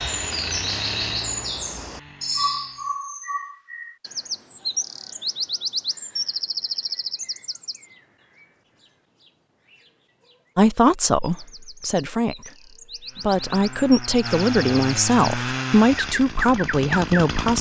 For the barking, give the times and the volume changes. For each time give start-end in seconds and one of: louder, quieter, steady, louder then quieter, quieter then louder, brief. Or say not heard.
not heard.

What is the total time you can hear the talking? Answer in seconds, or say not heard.
7 s.